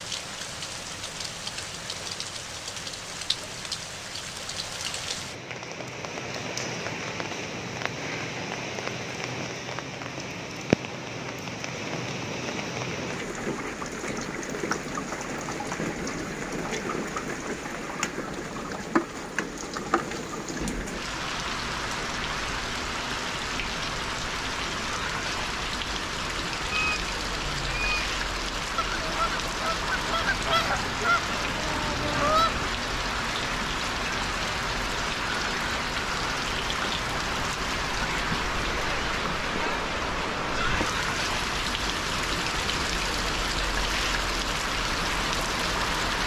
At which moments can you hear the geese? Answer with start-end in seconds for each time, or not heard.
26.7-28.1, 28.8-32.7.